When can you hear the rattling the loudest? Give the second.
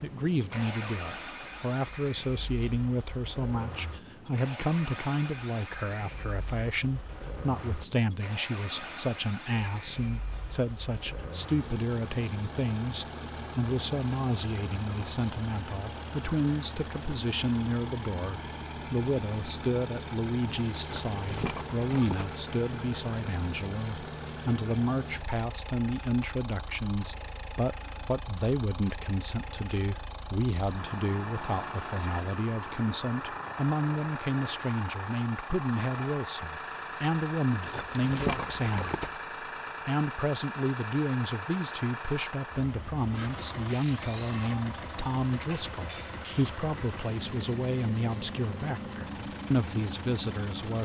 38 s.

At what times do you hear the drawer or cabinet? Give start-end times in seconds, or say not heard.
not heard.